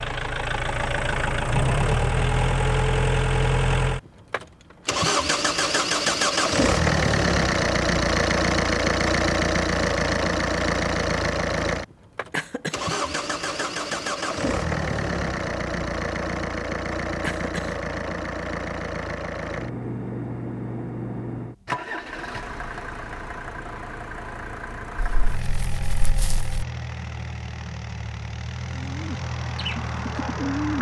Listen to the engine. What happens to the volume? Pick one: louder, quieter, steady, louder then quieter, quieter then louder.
quieter.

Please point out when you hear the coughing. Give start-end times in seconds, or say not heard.
12.3-12.8, 17.2-17.8.